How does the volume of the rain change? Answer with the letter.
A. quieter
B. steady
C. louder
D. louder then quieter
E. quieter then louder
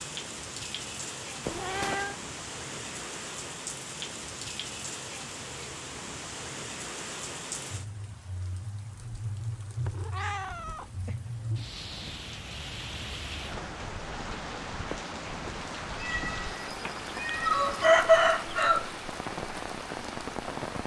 B.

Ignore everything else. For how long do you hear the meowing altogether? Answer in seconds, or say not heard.
5 s.